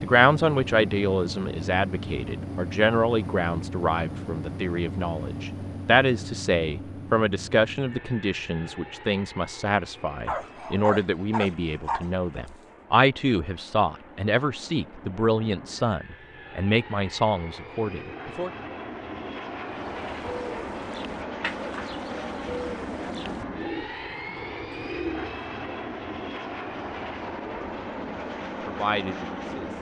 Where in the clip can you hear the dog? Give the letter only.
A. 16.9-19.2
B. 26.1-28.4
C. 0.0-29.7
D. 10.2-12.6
D.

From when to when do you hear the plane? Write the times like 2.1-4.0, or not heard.
0.0-29.7.